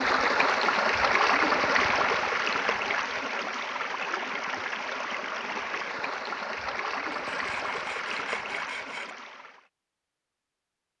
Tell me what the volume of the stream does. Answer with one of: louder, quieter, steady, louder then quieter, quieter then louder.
quieter.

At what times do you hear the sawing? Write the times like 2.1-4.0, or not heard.
7.1-9.2.